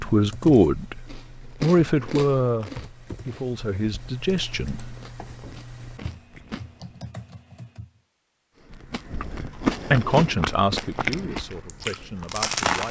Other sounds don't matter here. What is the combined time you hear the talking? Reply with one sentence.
The talking can be heard for 9 seconds in total.